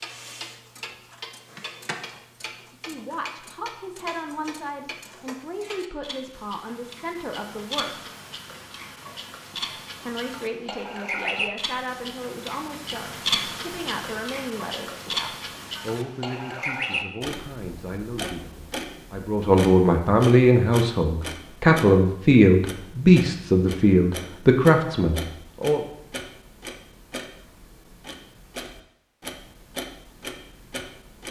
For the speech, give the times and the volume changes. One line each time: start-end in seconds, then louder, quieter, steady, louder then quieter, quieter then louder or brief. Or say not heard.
2.6-8.1 steady
10.0-25.8 louder.